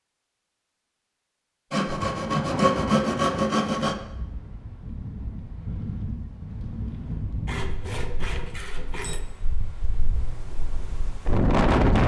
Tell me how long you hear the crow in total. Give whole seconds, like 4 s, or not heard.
not heard.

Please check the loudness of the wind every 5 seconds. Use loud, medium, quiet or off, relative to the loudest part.
medium, quiet, loud.